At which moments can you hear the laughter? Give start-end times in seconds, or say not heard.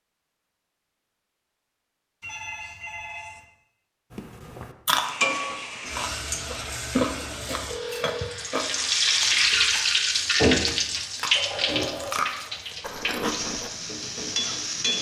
not heard.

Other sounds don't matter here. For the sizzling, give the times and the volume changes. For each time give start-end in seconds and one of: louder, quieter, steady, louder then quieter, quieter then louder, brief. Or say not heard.
4.8-14.9 louder then quieter.